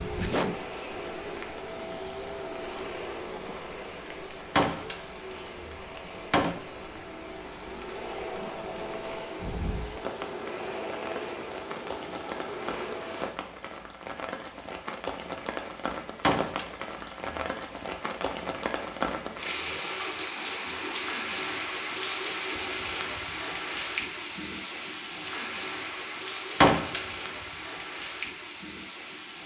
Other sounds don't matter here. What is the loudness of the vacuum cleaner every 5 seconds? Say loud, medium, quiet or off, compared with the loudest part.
loud, loud, loud, off, off, off.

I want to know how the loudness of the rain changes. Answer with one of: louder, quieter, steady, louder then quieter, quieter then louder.
louder.